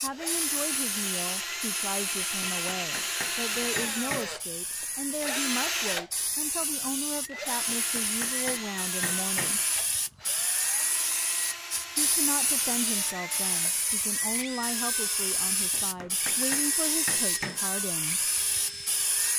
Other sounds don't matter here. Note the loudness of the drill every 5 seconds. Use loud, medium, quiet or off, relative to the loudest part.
loud, loud, medium, medium.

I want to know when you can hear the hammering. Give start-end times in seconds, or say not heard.
2.4-4.3, 7.7-9.6, 15.7-17.6.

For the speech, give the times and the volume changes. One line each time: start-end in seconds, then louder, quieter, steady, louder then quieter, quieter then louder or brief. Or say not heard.
0.0-9.6 steady
11.9-18.3 steady.